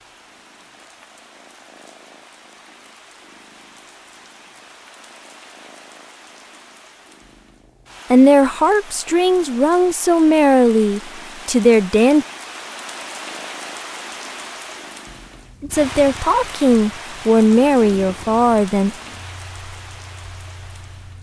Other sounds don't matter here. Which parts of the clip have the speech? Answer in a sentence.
The speech can be heard from 8.1 to 12.2 s and from 15.6 to 18.9 s.